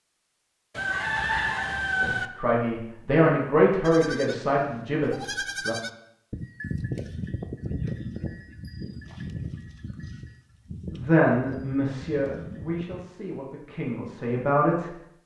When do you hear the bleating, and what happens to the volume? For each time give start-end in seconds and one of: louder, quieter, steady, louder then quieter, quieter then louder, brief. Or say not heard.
3.8-13.0 quieter.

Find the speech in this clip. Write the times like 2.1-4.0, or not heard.
2.0-5.8, 10.9-14.9.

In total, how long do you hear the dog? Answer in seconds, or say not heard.
not heard.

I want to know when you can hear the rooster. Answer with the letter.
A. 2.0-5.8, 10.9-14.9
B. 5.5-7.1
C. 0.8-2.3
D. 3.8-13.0
C.